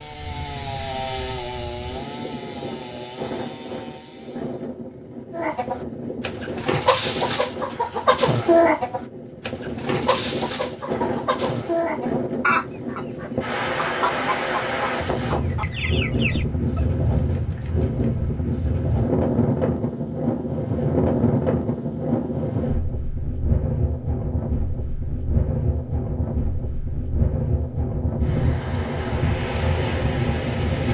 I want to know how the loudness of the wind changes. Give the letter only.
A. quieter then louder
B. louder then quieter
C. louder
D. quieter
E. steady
C.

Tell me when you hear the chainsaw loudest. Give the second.
1 s.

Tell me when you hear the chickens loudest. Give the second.
9 s.